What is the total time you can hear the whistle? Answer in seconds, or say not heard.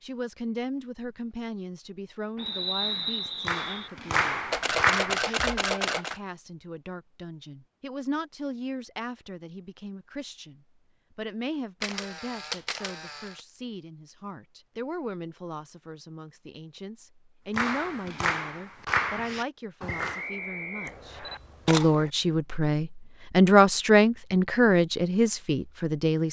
3 s.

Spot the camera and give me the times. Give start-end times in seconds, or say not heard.
4.5-6.2, 11.8-13.4, 20.9-22.1.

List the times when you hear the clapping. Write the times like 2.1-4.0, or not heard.
2.9-6.2, 17.6-20.2.